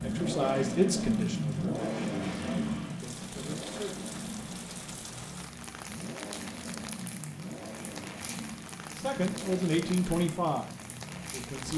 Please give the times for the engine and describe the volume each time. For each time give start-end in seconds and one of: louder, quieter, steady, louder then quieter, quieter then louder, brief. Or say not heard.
0.0-11.7 quieter.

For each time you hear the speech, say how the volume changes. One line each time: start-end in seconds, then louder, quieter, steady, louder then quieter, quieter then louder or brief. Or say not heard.
0.0-4.0 quieter
8.9-11.7 brief.